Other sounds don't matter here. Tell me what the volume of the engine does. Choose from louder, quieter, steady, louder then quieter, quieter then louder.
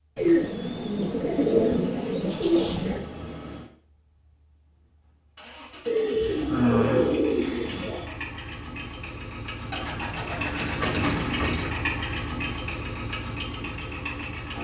louder.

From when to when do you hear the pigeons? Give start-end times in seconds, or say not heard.
0.1-3.0, 5.8-8.1, 9.7-11.8.